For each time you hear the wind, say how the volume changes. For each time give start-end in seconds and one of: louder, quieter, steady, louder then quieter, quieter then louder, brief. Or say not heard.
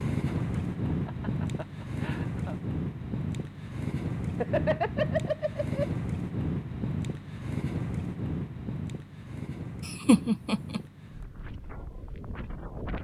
0.0-12.9 quieter.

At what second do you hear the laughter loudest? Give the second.
10 s.